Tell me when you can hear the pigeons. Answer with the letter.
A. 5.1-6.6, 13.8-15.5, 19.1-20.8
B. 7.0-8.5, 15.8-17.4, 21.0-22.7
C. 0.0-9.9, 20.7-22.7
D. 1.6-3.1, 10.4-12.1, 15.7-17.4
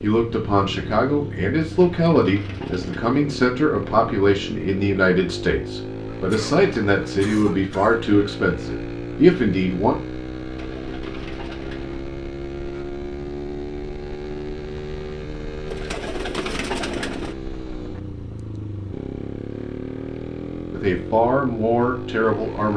D.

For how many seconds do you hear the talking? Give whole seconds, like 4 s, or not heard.
12 s.